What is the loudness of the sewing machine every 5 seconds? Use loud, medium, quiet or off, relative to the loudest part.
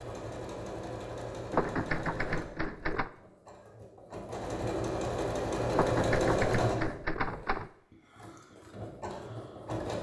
medium, loud.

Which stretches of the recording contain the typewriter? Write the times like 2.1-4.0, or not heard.
1.5-3.1, 5.7-7.7.